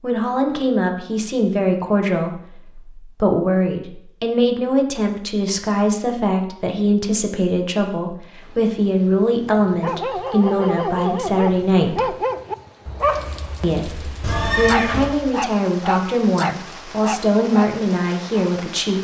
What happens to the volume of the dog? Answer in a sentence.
The loudness of the dog stays about the same.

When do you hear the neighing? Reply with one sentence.
The neighing can be heard from 14.2 to 15.2 s.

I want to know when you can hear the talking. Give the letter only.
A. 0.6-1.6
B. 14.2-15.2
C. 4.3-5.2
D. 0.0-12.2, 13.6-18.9
D.